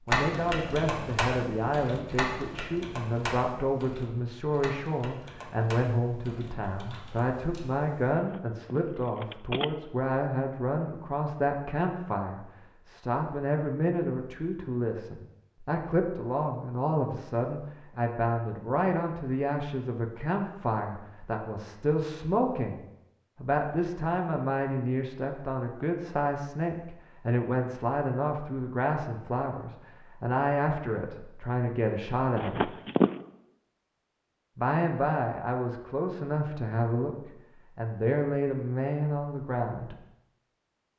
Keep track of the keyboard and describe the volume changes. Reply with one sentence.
The volume of the keyboard goes down.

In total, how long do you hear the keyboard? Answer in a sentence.
You can hear the keyboard for 8 seconds altogether.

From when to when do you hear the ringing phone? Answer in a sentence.
You can hear the ringing phone from 8.1 to 9.7 s and from 32.4 to 33.1 s.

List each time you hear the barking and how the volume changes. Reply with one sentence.
You can't hear the barking here.